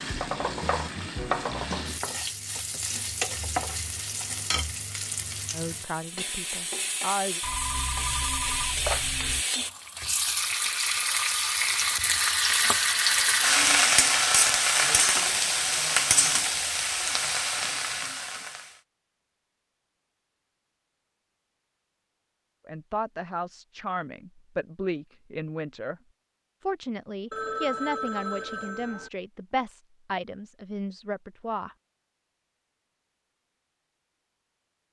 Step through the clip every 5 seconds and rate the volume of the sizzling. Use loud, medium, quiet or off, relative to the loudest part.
medium, medium, loud, loud, off, off, off.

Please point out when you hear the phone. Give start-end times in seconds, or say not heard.
7.4-9.4, 27.3-29.1.